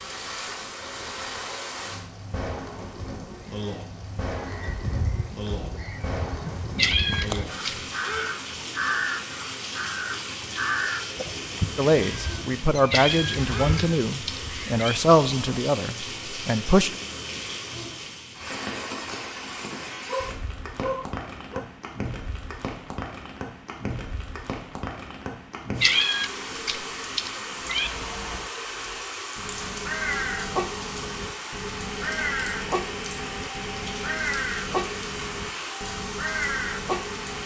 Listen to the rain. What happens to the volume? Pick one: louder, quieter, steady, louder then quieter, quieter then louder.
steady.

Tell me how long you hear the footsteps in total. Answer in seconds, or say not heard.
not heard.